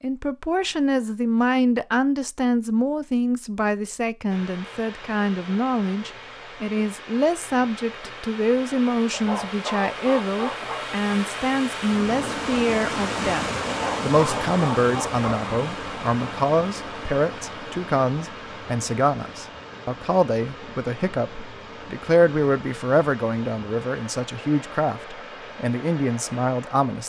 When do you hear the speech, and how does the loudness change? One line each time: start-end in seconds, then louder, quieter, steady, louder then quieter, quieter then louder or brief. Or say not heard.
0.0-27.0 steady.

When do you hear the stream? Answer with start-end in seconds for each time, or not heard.
4.3-27.0.